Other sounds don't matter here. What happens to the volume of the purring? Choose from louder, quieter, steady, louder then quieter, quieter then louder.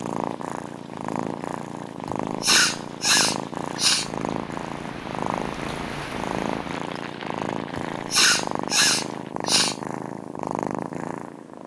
steady.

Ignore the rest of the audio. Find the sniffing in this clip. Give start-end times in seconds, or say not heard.
2.0-4.1, 7.8-9.8.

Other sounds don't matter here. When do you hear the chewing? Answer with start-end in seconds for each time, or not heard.
not heard.